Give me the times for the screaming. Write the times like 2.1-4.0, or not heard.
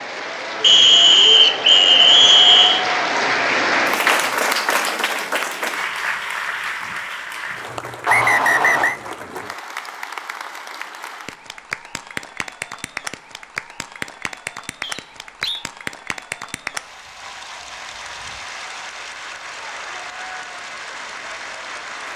not heard.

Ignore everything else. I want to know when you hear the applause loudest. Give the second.
4 s.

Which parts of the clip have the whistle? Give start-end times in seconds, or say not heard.
0.6-2.9, 8.1-8.9, 14.8-15.7.